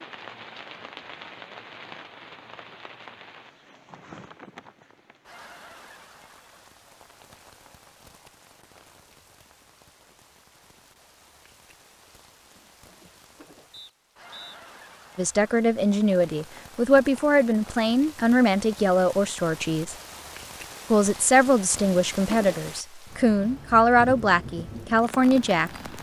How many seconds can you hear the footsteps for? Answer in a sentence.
You can't hear the footsteps here.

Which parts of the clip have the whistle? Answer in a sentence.
The whistle can be heard from 13.7 to 14.6 s.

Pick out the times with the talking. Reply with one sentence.
You can hear the talking from 15.2 to 19.9 s and from 20.9 to 25.9 s.